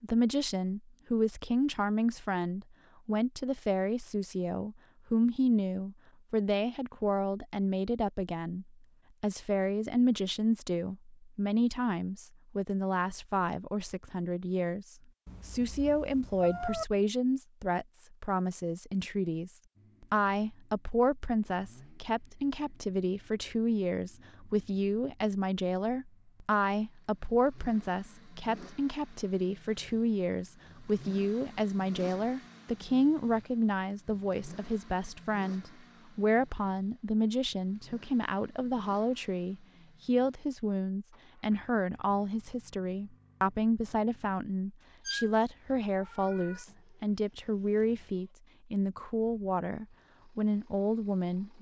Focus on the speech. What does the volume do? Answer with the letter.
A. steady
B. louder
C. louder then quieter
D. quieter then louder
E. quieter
A.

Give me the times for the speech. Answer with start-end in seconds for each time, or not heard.
0.0-51.5.